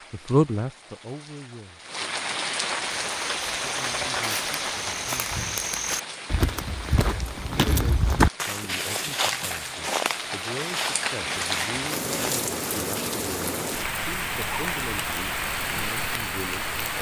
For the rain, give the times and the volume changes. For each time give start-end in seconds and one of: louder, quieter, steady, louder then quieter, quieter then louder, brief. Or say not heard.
0.0-16.9 quieter then louder.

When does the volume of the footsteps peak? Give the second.
8 s.